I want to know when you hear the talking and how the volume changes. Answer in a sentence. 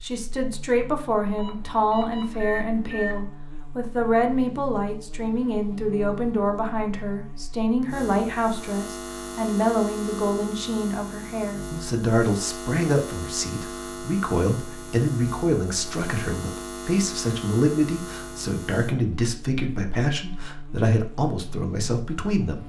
The talking can be heard from 0.0 to 22.6 s, at a steady volume.